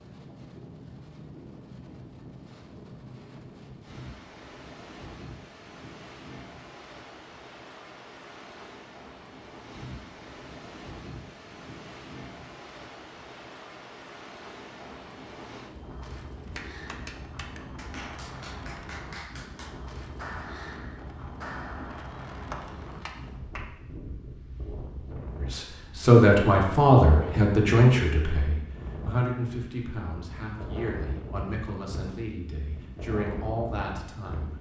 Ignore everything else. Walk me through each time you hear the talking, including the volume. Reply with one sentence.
The talking can be heard from 25.4 to 34.5 s, getting quieter.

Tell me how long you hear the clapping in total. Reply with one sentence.
The clapping can be heard for 7 seconds in total.